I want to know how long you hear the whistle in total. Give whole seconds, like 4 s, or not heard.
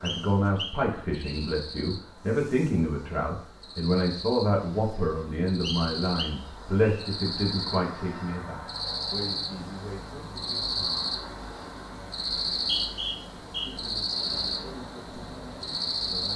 4 s.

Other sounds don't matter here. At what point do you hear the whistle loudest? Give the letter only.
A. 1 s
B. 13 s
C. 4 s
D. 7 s
B.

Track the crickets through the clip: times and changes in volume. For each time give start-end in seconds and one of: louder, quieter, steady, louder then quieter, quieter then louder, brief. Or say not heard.
0.0-16.3 louder.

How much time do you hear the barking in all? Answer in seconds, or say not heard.
not heard.